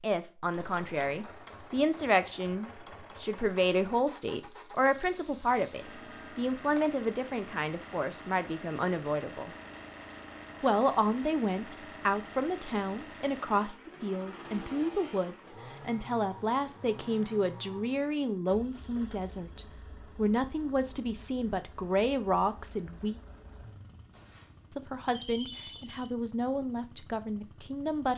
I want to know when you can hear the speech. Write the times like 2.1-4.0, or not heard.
0.0-9.6, 10.6-23.2, 24.7-28.1.